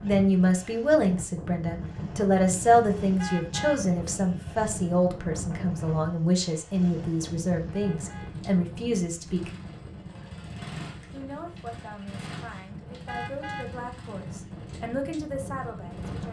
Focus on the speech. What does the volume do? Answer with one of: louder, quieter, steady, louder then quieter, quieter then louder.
quieter.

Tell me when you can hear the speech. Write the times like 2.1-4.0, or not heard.
0.0-9.5, 11.1-16.2.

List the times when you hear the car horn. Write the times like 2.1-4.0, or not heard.
3.1-3.9, 7.7-8.3, 13.1-13.8.